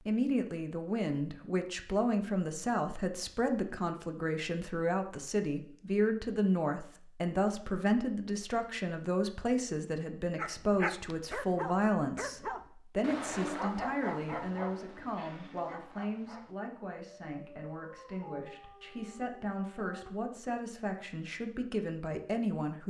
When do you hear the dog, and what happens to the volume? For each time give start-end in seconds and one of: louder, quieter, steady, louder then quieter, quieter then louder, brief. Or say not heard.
10.3-20.1 quieter.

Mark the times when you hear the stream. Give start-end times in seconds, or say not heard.
not heard.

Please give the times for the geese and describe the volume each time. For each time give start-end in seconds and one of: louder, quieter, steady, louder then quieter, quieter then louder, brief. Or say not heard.
not heard.